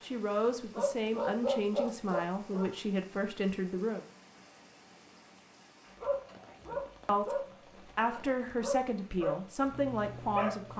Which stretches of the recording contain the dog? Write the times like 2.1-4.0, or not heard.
0.0-2.7, 6.0-10.7.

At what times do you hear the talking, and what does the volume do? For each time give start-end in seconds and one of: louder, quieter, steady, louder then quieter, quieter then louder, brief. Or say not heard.
0.0-4.0 steady
6.7-10.7 steady.